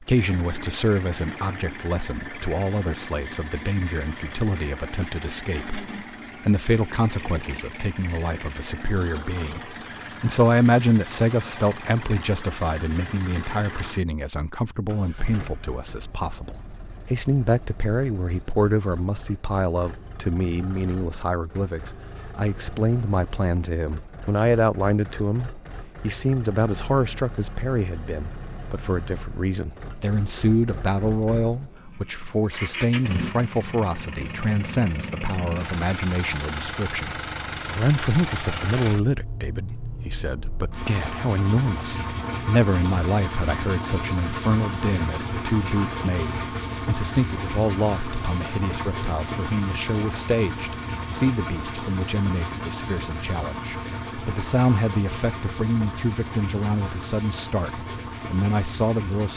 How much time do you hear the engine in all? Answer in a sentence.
You can hear the engine for 59 seconds altogether.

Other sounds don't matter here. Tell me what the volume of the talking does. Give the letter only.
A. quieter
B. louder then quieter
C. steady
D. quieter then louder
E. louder
C.